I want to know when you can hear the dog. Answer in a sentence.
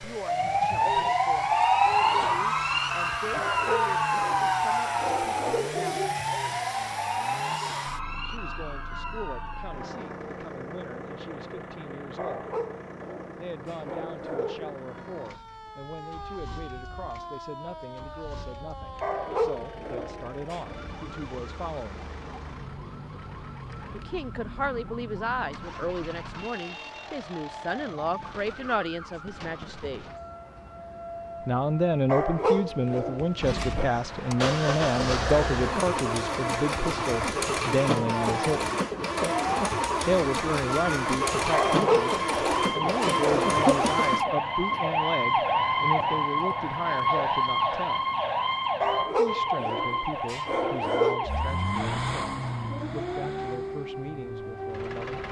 The dog can be heard from 3.3 to 6.2 s, from 12.2 to 14.8 s, from 19.0 to 20.8 s, from 32.0 to 33.9 s, from 41.5 to 43.8 s and from 48.8 to 51.3 s.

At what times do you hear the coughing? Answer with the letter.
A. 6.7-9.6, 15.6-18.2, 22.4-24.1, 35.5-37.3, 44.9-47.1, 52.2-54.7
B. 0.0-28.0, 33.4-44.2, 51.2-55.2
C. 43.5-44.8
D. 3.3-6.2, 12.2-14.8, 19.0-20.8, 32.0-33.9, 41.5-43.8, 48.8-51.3
C.